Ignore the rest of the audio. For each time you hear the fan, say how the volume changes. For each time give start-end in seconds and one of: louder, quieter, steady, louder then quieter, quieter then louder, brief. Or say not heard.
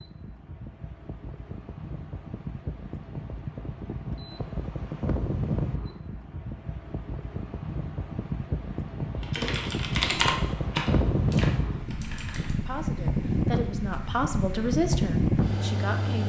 0.0-16.2 louder.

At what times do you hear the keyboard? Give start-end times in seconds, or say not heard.
9.2-12.6.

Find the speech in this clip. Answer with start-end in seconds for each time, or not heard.
12.7-16.2.